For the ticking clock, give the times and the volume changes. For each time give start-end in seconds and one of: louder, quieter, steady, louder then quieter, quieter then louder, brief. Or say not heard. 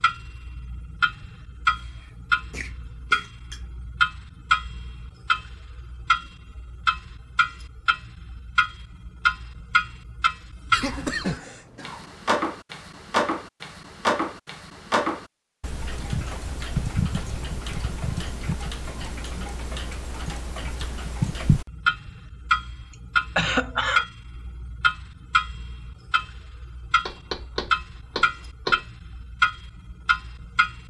0.0-30.8 steady.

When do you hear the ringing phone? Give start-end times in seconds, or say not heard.
not heard.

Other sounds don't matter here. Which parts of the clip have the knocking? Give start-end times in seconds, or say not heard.
27.1-28.9.